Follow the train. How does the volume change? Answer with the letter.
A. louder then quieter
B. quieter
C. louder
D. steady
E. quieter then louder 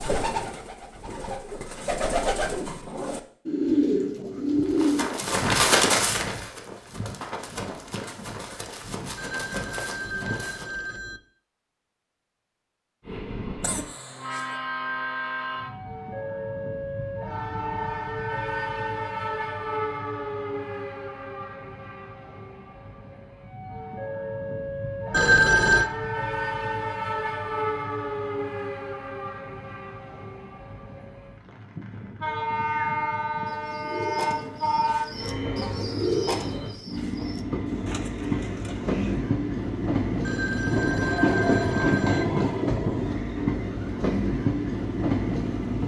C.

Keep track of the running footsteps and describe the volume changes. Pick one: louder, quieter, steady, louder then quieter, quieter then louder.
quieter.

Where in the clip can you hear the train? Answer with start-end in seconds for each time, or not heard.
13.0-45.8.